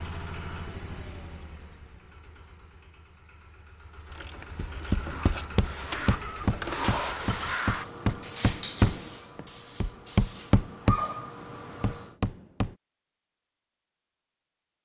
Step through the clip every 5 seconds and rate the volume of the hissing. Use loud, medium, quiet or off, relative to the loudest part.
off, loud, loud.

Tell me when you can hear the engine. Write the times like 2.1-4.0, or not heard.
0.0-7.5.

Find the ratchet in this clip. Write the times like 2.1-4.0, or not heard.
4.0-7.0.